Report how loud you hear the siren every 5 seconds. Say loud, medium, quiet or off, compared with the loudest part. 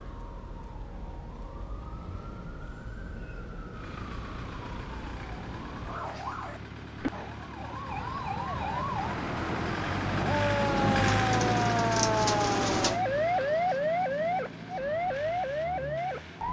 quiet, medium, loud, loud.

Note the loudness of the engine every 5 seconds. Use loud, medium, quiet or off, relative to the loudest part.
quiet, medium, loud, medium.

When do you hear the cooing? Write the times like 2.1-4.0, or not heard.
11.2-13.0.